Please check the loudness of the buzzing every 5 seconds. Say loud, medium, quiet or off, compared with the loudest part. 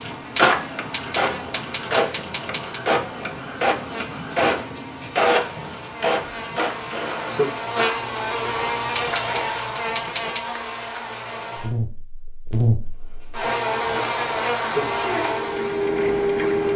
quiet, loud, loud, loud.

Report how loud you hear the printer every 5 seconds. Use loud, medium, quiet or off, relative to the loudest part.
loud, loud, medium, loud.